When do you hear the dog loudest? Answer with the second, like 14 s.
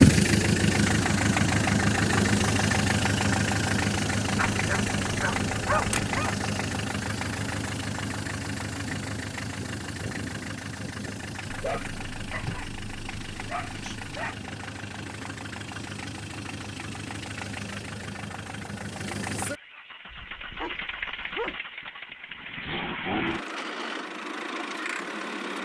6 s.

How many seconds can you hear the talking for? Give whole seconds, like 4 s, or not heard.
not heard.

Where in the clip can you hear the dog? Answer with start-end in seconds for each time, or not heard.
4.3-6.3, 11.5-14.3, 20.1-21.6.